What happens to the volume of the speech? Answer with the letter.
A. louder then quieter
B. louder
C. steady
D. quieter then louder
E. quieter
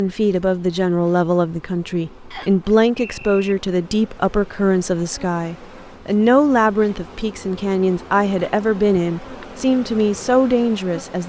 C.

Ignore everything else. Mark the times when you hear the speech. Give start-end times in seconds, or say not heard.
0.0-11.2.